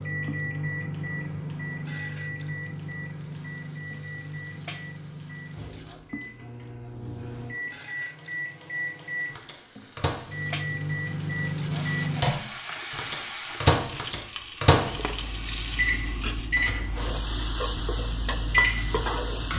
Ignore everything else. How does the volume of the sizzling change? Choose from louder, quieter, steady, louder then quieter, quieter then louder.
louder.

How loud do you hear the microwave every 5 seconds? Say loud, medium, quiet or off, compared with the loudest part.
medium, medium, loud, loud.